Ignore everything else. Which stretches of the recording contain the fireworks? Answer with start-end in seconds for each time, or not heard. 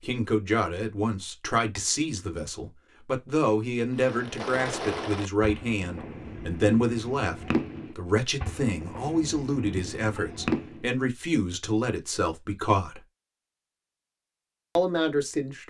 4.0-10.8.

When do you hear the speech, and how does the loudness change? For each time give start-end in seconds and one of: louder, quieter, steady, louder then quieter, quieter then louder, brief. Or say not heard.
0.0-13.0 steady
14.8-15.6 brief.